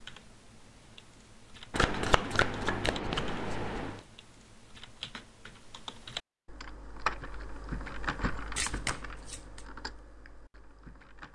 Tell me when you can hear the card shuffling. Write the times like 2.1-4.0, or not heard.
1.7-4.0, 8.6-9.7.